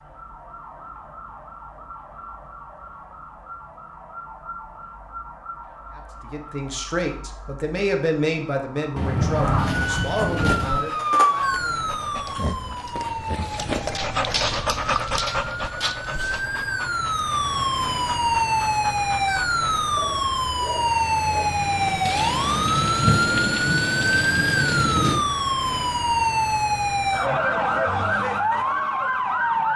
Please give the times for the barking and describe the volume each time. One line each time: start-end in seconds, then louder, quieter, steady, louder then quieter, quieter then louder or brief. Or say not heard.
10.2-21.5 louder then quieter.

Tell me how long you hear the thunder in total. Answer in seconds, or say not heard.
5 s.